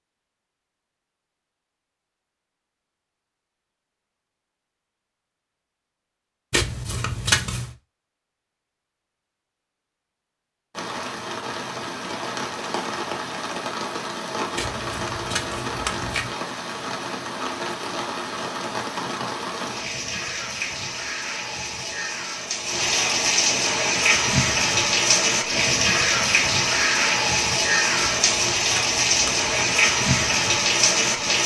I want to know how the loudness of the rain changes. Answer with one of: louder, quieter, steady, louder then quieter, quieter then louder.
louder.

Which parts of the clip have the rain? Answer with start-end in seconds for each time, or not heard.
10.7-31.4.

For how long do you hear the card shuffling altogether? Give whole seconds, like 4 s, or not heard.
5 s.